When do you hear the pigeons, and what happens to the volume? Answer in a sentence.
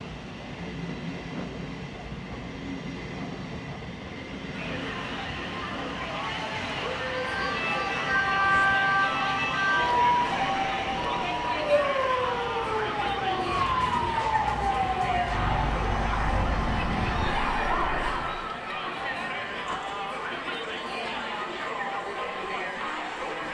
The pigeons can't be heard in this clip.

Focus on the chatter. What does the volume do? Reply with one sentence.
The volume of the chatter stays about the same.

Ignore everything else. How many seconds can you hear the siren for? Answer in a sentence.
You can hear the siren for 11 seconds altogether.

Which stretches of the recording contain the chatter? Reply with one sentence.
You can hear the chatter from 4.5 to 23.4 s.